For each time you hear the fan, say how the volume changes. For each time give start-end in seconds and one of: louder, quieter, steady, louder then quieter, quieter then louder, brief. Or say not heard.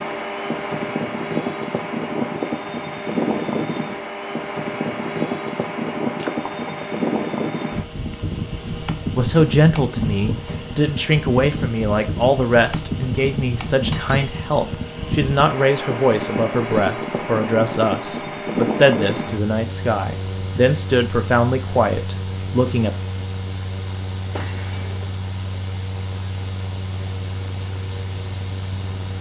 0.0-29.1 quieter.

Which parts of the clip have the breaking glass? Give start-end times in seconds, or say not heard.
6.2-7.0, 13.9-14.3, 24.4-26.3.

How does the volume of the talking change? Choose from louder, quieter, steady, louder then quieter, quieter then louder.
steady.